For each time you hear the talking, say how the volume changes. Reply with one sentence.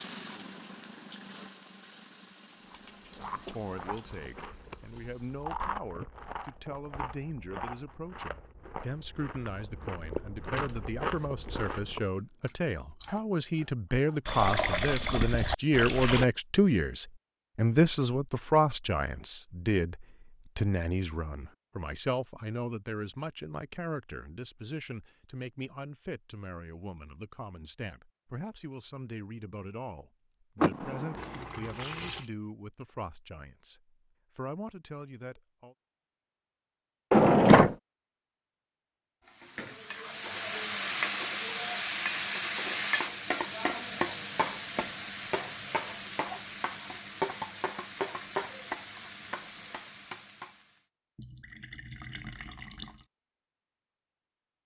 The talking can be heard from 3.2 to 35.8 s, getting louder then quieter.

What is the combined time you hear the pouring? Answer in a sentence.
You can hear the pouring for 5 seconds altogether.